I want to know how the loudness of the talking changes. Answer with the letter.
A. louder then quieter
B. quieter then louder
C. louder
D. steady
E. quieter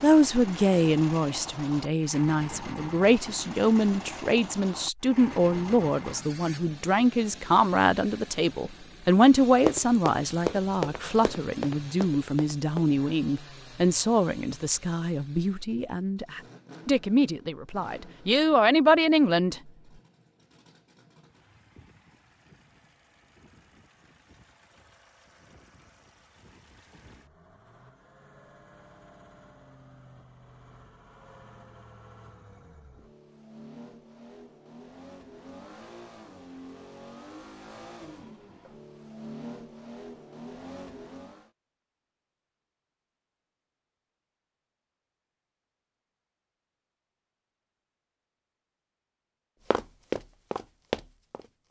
D.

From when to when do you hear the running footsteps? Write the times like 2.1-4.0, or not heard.
9.7-12.9, 49.7-51.6.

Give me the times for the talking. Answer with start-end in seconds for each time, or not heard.
0.0-19.6.